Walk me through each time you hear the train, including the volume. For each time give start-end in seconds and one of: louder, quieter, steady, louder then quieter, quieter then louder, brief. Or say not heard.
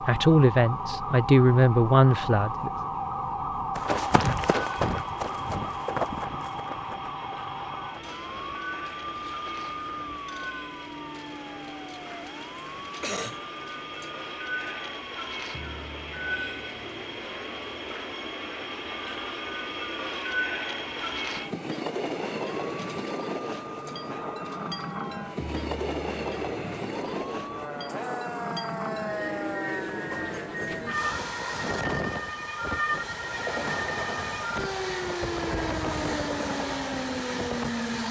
0.0-38.0 louder.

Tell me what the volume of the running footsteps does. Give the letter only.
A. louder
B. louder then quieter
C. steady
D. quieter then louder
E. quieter
E.